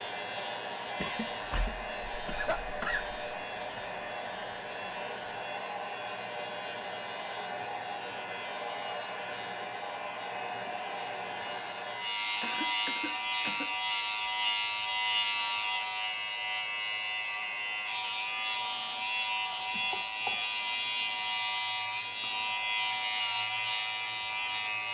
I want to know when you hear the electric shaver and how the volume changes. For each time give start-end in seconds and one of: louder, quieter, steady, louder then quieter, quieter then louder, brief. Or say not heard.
0.0-24.8 louder.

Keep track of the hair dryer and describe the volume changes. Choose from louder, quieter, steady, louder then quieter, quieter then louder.
quieter.